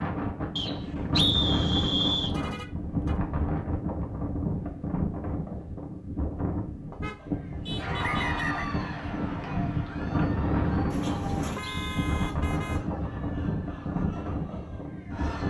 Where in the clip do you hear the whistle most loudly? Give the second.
1 s.